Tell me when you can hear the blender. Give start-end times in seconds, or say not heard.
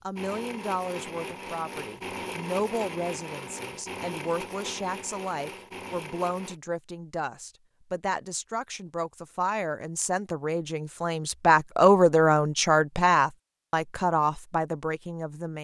0.1-6.6.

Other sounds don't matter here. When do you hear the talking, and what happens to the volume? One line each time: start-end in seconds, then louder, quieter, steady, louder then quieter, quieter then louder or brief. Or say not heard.
0.0-15.5 louder.